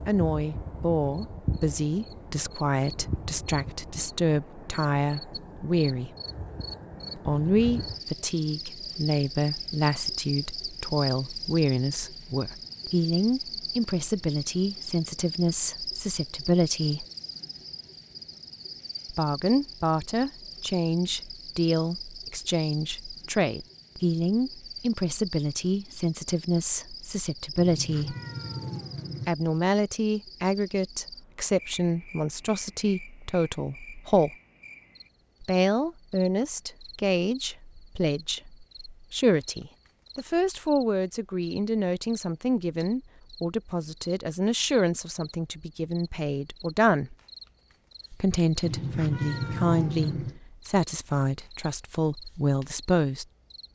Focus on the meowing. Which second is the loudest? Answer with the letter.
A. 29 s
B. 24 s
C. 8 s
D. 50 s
D.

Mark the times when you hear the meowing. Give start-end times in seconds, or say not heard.
7.3-7.8, 27.6-29.4, 48.6-50.4.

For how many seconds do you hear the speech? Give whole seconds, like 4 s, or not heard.
47 s.